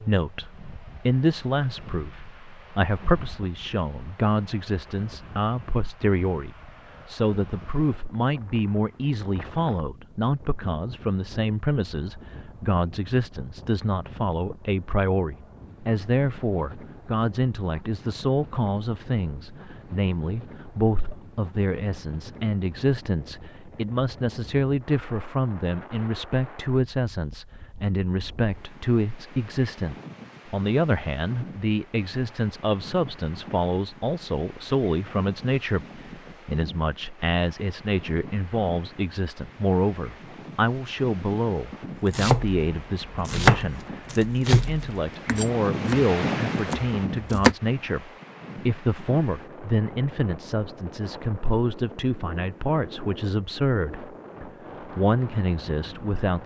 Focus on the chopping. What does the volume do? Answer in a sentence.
The loudness of the chopping goes up, then down.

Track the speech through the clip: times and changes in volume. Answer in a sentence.
The speech can be heard from 0.0 to 56.4 s, at a steady volume.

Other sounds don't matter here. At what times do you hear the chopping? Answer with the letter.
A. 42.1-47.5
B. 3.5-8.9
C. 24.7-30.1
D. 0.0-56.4
A.